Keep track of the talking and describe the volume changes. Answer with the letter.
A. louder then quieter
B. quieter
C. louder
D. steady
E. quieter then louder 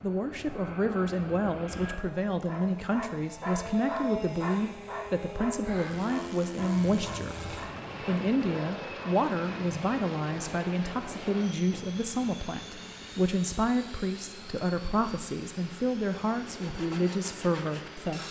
D.